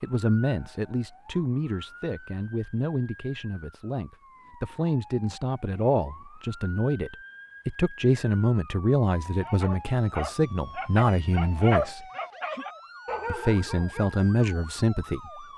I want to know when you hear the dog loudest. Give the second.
12 s.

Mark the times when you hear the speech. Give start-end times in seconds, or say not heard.
0.0-12.0, 13.3-15.2.